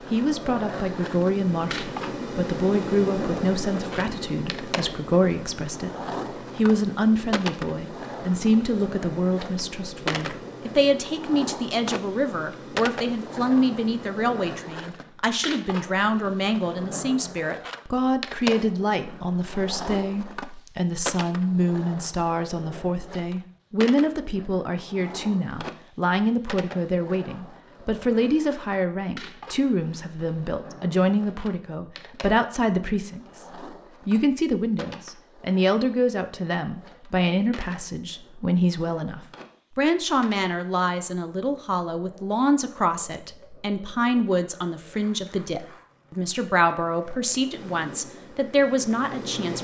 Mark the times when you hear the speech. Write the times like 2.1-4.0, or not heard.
0.0-6.0, 6.5-33.2, 34.0-49.5.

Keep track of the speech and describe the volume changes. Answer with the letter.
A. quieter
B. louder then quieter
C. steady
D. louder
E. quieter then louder
C.